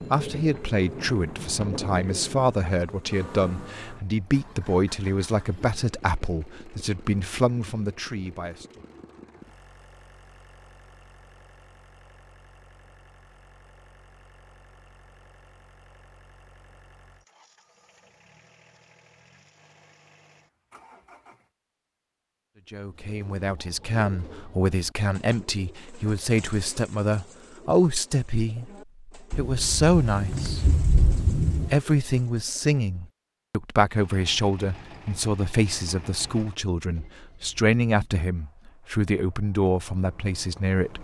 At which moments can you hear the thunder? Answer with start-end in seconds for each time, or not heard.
0.5-3.7, 29.3-31.8.